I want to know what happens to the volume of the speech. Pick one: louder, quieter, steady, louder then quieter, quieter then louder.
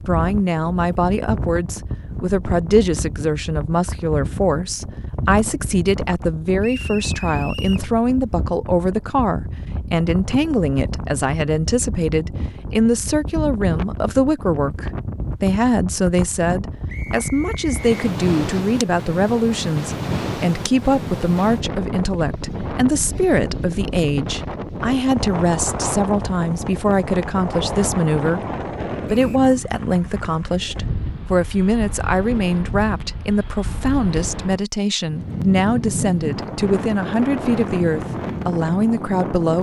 steady.